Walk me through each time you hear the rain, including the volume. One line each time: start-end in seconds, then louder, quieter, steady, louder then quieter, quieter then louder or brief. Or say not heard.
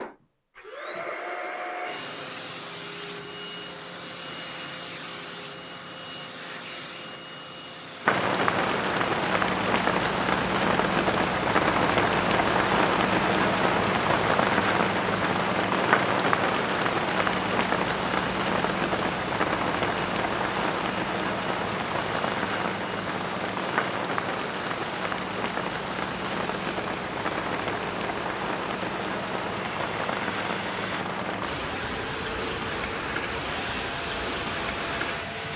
8.1-35.5 quieter.